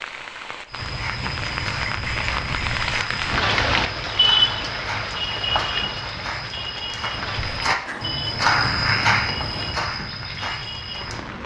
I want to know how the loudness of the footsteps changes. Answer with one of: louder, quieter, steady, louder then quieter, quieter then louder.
louder.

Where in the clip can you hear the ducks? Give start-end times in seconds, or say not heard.
0.8-3.1, 7.8-9.8.